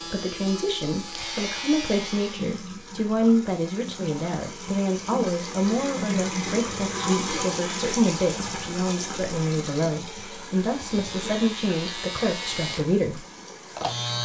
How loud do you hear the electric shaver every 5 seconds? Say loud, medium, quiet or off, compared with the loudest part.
loud, off, loud.